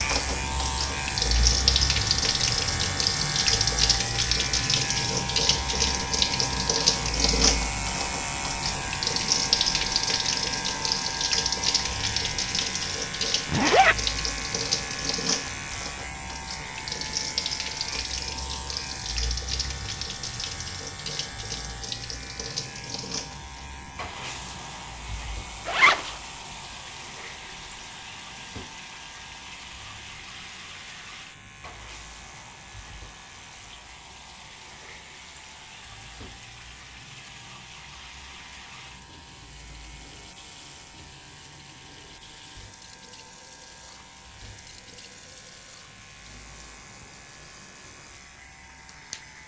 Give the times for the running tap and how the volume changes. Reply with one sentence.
You can hear the running tap from 0.0 to 49.4 s, getting quieter.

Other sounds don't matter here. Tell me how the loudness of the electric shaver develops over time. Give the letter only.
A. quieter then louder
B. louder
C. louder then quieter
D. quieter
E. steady
D.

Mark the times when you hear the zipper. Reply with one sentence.
You can hear the zipper from 13.4 to 13.9 s and from 25.6 to 26.1 s.